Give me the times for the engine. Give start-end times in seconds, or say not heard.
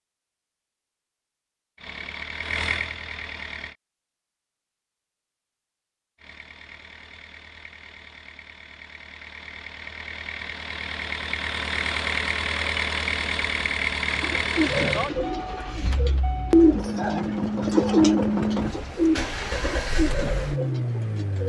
1.8-3.8, 6.2-21.4.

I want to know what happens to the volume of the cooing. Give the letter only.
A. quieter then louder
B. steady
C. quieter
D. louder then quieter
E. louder
D.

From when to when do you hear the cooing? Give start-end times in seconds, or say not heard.
14.1-21.4.